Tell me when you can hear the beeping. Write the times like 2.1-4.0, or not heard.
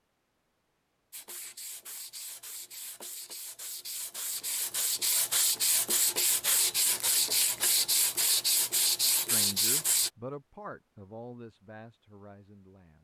not heard.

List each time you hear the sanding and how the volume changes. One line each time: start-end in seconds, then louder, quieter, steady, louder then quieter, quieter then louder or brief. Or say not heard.
1.1-10.1 louder.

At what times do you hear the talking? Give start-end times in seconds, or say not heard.
9.2-12.9.